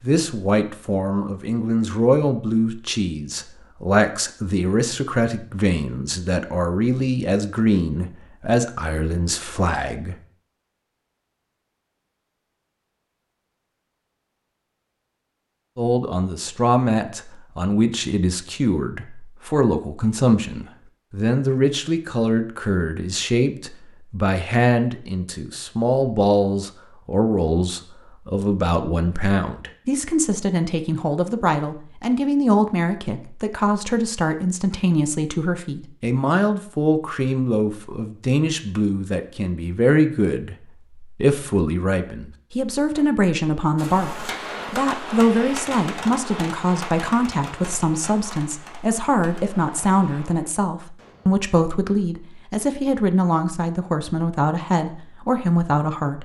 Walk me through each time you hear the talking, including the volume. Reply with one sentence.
You can hear the talking from 0.0 to 10.2 s, at a steady volume; and from 15.8 to 56.1 s, at a steady volume.